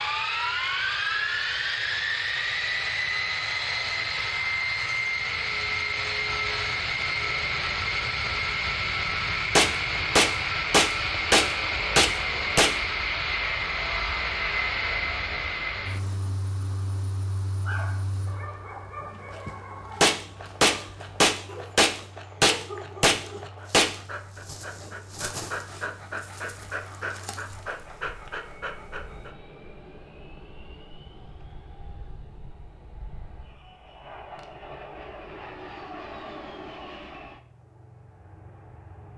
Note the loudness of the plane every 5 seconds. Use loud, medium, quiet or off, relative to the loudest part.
loud, loud, loud, medium, quiet, quiet, quiet, quiet.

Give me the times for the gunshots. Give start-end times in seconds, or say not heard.
9.6-12.8, 20.0-23.9.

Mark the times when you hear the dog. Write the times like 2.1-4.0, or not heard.
17.6-29.4.